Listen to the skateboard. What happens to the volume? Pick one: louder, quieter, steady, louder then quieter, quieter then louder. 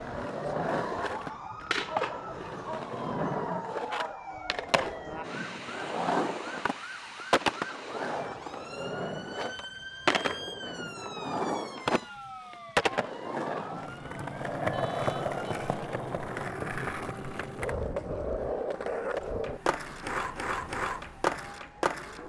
steady.